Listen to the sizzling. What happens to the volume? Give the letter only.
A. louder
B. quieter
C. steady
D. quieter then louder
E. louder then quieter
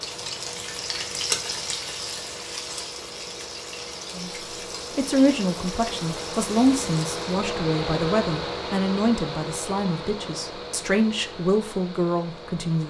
B.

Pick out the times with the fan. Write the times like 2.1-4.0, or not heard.
0.0-12.8.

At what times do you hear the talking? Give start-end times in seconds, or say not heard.
4.2-12.8.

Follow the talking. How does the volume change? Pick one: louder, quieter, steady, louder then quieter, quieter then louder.
quieter then louder.